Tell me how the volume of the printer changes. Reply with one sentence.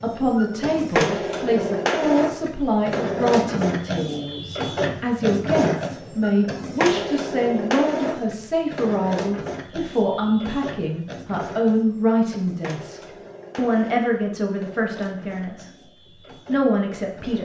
The loudness of the printer goes down.